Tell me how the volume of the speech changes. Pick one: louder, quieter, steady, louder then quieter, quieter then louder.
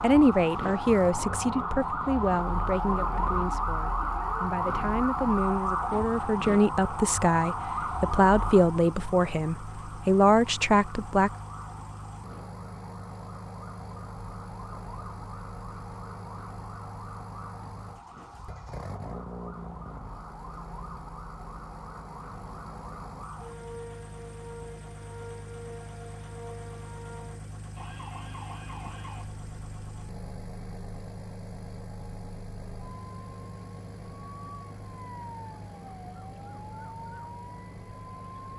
quieter then louder.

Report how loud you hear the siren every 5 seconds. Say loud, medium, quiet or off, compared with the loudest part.
loud, loud, quiet, quiet, quiet, quiet, quiet, quiet.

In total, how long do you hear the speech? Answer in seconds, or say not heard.
11 s.